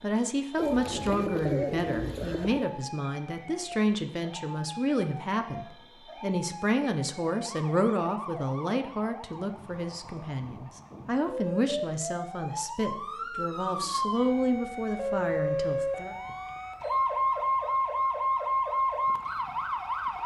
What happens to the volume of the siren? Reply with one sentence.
The volume of the siren goes up.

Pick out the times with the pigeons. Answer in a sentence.
The pigeons can be heard from 0.6 to 2.8 s.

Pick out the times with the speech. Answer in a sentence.
The speech can be heard from 0.0 to 16.1 s.